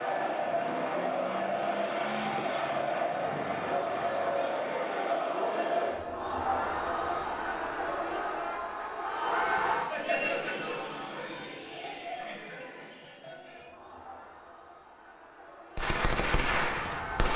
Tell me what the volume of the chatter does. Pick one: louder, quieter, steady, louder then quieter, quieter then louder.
quieter.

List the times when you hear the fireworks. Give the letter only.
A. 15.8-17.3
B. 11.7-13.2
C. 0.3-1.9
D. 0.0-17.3
A.